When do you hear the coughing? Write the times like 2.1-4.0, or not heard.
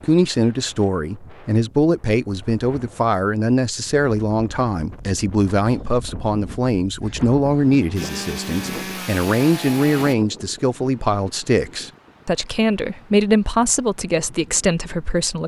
not heard.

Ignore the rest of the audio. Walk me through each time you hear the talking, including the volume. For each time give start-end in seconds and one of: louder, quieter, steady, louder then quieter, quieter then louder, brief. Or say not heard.
0.0-15.4 steady.